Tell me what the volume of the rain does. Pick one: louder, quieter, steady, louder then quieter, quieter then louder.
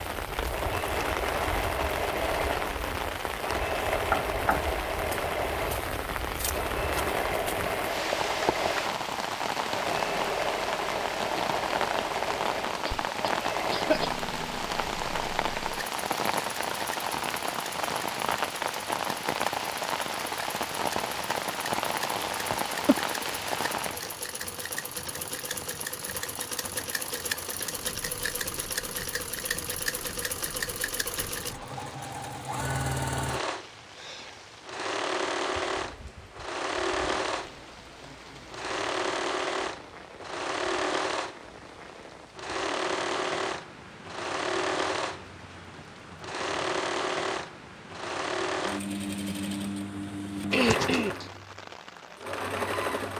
quieter.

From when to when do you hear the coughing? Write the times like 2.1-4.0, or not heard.
12.7-14.1, 22.5-22.9, 50.5-51.2.